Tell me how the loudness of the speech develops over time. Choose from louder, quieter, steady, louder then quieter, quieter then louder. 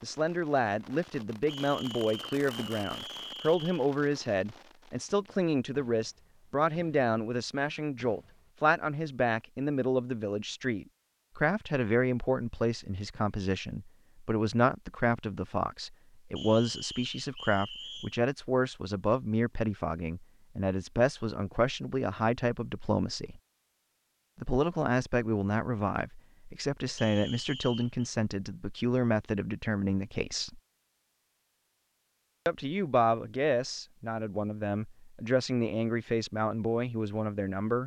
steady.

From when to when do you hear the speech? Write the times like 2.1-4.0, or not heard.
0.0-23.4, 24.4-30.6, 32.5-37.8.